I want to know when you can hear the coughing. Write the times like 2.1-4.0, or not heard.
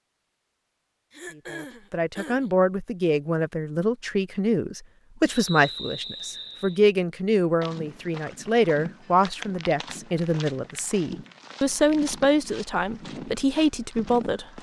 1.1-2.5.